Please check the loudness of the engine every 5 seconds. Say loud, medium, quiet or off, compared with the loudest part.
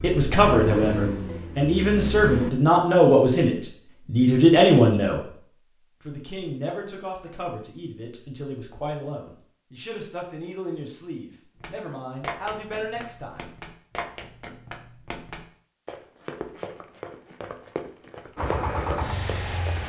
loud, off, off, loud.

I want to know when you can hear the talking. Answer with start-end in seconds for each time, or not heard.
0.0-5.4, 6.0-13.5.